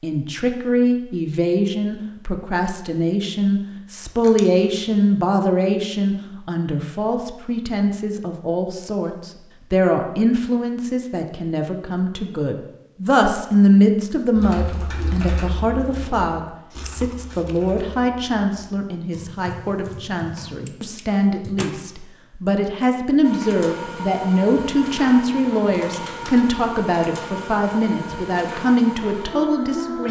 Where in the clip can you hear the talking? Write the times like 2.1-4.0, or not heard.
0.0-30.0.